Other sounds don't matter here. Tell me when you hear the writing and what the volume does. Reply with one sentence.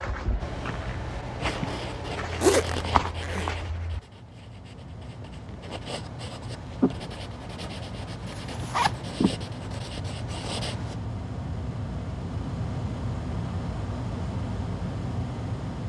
The writing can be heard from 0.4 to 11.0 s, getting quieter then louder.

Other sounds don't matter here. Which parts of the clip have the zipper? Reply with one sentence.
You can hear the zipper from 2.4 to 3.5 s and from 8.2 to 8.9 s.